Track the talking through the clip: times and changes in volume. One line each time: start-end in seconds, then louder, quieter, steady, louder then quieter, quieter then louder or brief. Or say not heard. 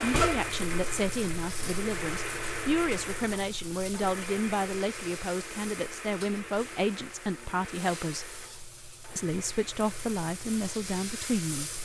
0.0-8.3 steady
9.2-11.8 brief.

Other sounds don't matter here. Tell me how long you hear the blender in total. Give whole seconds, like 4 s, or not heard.
12 s.